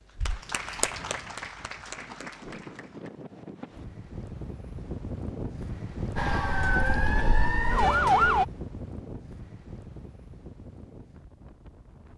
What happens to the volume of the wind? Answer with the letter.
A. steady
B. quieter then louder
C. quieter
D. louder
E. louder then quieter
E.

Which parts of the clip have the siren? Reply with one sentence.
You can hear the siren from 6.2 to 8.4 s.